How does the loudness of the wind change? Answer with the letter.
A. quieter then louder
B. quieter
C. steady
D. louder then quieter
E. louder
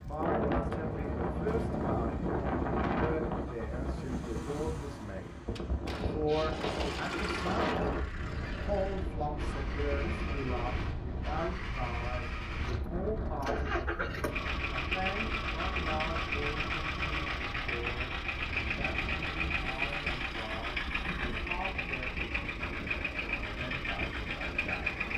B.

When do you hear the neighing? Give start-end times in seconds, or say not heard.
not heard.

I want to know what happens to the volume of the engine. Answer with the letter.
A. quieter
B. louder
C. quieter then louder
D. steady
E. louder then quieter
B.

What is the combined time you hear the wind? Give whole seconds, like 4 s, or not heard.
25 s.